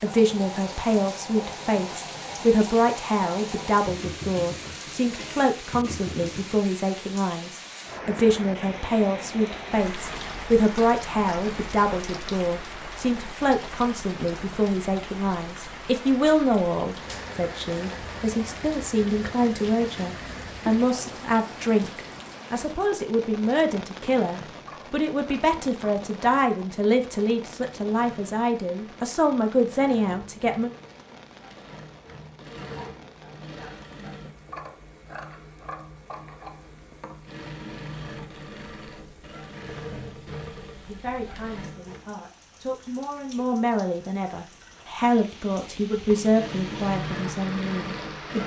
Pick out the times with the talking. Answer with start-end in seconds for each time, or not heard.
0.0-30.7, 40.9-48.4.